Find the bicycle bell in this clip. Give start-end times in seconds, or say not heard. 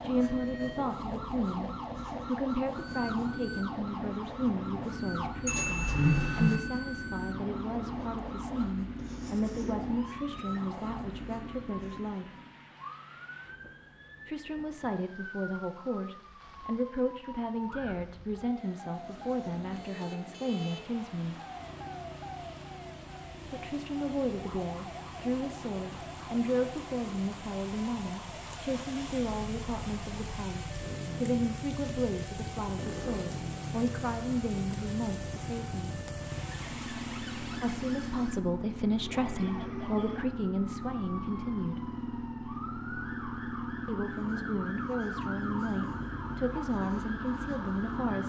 5.5-6.6.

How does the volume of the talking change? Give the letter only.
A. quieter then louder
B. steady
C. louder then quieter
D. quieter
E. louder
B.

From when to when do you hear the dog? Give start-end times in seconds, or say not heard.
not heard.